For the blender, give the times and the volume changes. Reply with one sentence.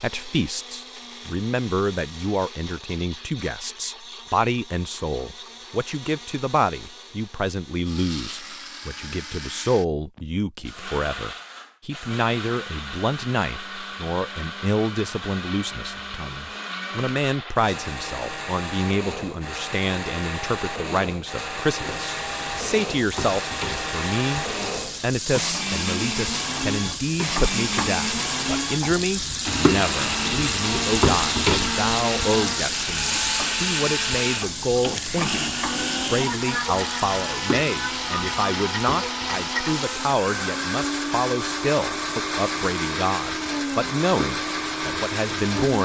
The blender can be heard from 0.0 to 45.7 s, getting louder.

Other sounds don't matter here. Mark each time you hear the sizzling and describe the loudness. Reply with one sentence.
The sizzling can be heard from 21.8 to 45.7 s, getting louder then quieter.